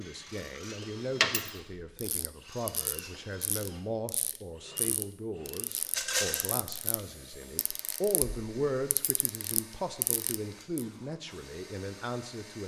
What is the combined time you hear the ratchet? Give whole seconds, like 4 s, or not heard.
9 s.